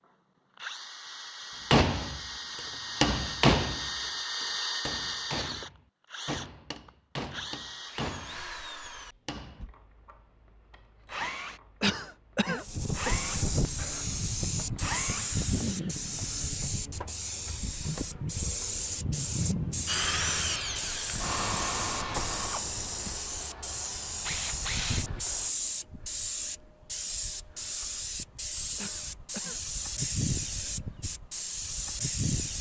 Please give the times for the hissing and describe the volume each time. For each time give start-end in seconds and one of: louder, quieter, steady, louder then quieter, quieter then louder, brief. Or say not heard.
12.6-32.5 steady.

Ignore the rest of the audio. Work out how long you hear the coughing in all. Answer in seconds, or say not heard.
2 s.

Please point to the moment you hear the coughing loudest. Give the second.
12 s.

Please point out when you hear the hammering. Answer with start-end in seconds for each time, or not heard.
1.7-9.7.